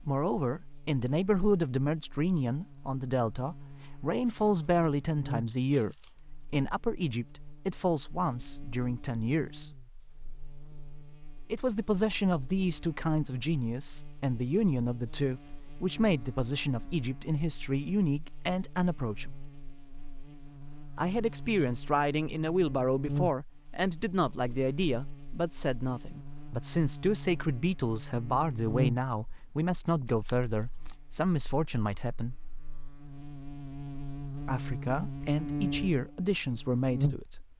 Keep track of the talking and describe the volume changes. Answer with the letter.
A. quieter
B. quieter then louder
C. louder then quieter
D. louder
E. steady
E.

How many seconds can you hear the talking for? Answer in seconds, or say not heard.
32 s.